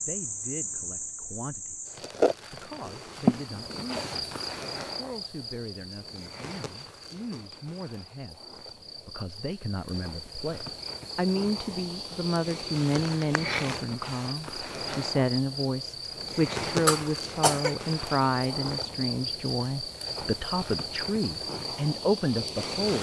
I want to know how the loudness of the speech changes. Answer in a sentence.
The loudness of the speech goes up.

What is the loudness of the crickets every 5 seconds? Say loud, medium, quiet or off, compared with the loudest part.
loud, medium, loud, loud, loud.